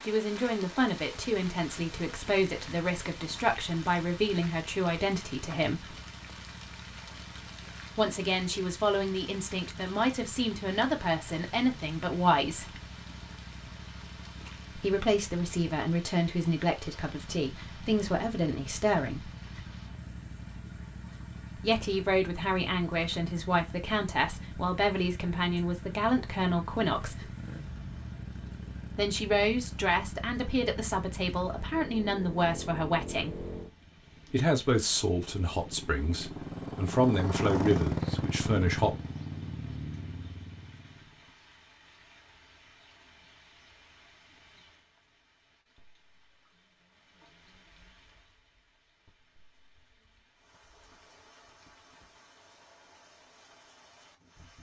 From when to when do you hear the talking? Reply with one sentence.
The talking can be heard from 0.0 to 6.0 s, from 8.0 to 12.8 s, from 14.8 to 19.3 s, from 21.6 to 27.3 s, from 28.9 to 33.5 s and from 34.3 to 39.0 s.